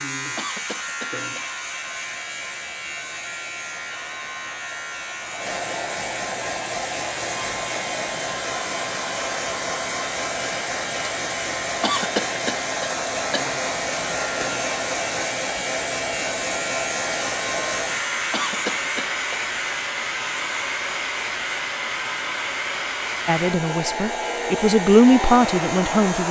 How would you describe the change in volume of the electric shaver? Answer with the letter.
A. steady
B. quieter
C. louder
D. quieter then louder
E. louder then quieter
A.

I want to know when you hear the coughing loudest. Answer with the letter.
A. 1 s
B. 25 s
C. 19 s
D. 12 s
D.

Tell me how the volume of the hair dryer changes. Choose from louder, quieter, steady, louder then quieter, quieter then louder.
louder.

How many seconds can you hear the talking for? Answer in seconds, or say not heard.
3 s.